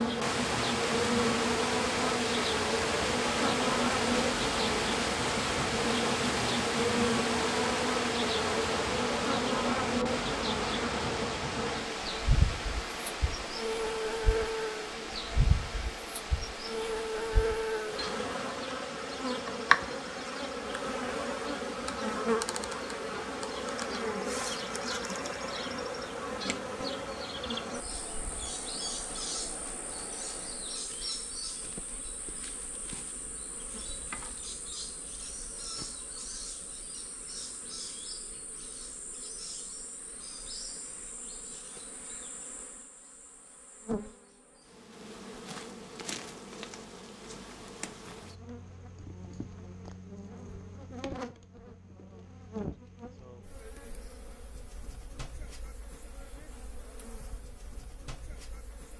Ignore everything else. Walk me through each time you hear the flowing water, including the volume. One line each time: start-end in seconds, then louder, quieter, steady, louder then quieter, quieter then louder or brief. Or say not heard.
0.0-30.9 quieter.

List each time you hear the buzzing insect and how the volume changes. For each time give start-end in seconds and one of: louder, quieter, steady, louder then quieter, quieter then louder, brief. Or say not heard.
0.0-58.9 quieter.